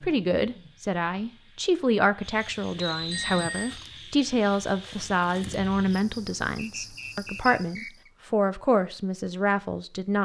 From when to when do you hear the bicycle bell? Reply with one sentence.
You can hear the bicycle bell from 3.0 to 3.8 s.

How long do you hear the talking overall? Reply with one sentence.
You can hear the talking for 10 seconds altogether.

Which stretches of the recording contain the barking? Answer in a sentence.
You can't hear the barking here.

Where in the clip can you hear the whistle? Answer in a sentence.
The whistle can be heard from 2.8 to 3.5 s and from 6.5 to 8.1 s.